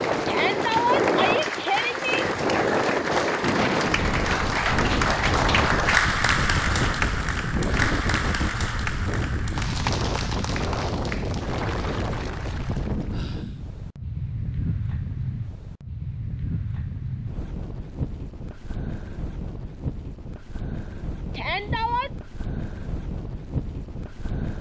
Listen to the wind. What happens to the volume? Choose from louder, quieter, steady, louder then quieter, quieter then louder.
quieter.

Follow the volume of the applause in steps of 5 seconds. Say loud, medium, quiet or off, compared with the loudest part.
loud, loud, medium, off, off.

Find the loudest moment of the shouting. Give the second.
1 s.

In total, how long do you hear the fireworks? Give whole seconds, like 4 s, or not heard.
not heard.